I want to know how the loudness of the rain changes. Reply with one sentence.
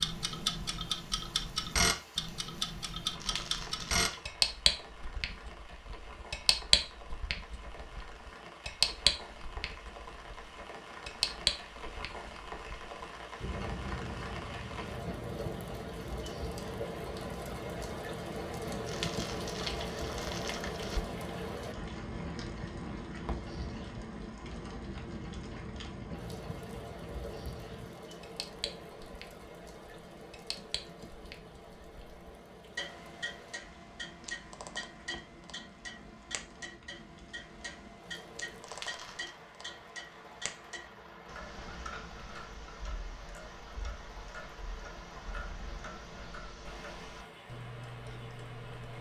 The loudness of the rain goes up, then down.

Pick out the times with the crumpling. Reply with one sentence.
You can hear the crumpling from 3.2 to 4.2 s, from 18.9 to 21.1 s and from 38.6 to 39.4 s.